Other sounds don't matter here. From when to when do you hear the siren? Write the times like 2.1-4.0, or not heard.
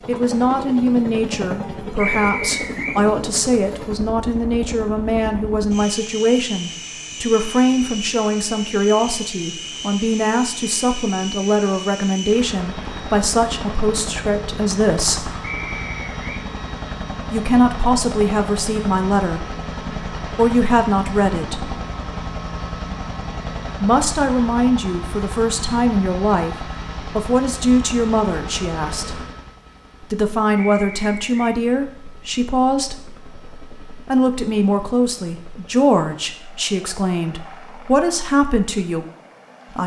not heard.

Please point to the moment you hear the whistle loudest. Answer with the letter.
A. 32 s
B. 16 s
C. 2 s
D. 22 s
C.